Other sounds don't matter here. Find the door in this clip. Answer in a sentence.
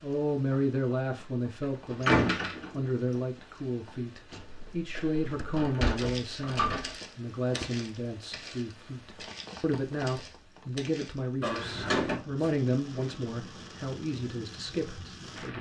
The door can be heard from 2.0 to 2.8 s, from 5.5 to 7.0 s and from 11.4 to 12.2 s.